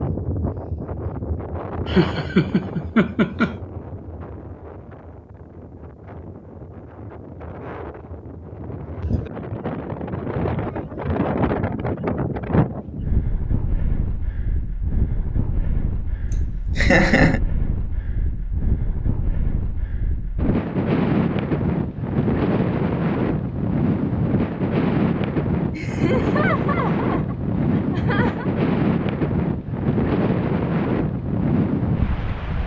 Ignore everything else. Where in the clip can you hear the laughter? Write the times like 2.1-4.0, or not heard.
1.9-3.5, 16.3-17.4, 25.7-28.5.